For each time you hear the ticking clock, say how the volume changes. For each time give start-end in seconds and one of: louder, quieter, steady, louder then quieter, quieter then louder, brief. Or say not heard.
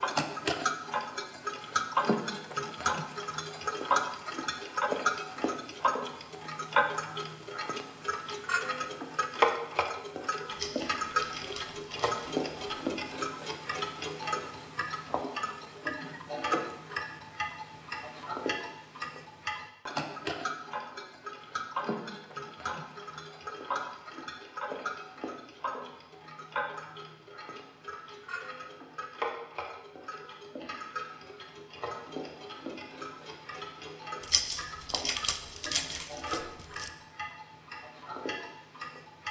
0.0-39.2 quieter.